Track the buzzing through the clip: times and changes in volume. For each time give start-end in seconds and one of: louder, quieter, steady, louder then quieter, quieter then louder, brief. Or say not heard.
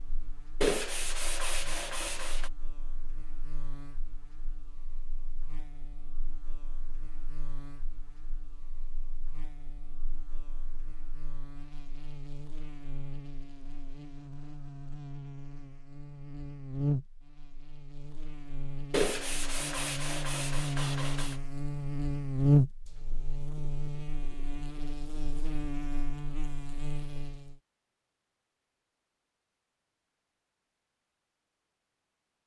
0.0-27.6 louder.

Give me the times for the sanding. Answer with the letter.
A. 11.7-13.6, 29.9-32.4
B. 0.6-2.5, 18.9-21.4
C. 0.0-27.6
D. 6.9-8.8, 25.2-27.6
B.